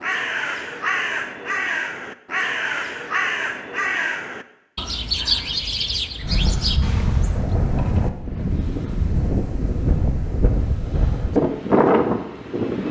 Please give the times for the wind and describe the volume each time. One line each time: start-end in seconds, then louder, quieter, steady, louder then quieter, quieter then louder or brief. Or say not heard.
6.2-12.8 louder.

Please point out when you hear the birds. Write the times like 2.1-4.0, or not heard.
0.0-7.5.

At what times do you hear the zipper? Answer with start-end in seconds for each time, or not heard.
not heard.